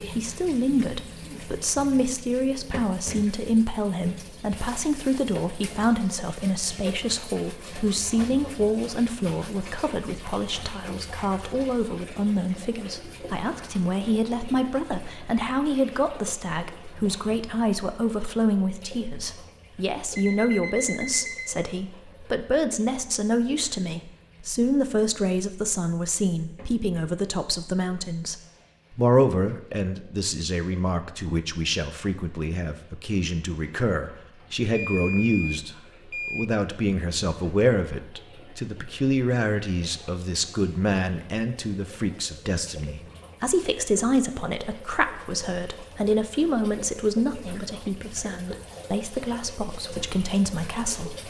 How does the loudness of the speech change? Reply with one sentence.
The loudness of the speech stays about the same.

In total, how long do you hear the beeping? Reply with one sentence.
You can hear the beeping for 3 seconds altogether.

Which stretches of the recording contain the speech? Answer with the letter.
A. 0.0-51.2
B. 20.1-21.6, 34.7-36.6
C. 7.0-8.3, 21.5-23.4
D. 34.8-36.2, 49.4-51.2
A.